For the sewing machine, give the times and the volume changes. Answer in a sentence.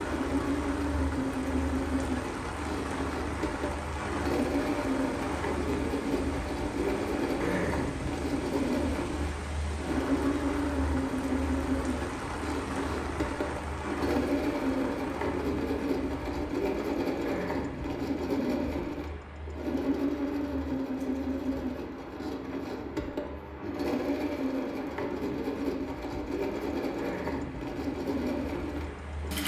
You can hear the sewing machine from 0.0 to 29.4 s, at a steady volume.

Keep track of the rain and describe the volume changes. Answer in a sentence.
The loudness of the rain goes down.